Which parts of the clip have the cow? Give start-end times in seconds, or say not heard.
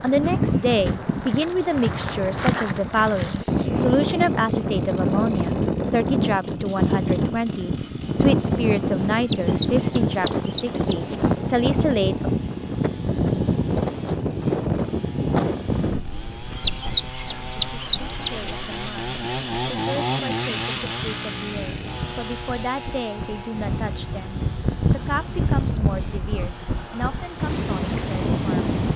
not heard.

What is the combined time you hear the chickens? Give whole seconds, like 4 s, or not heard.
4 s.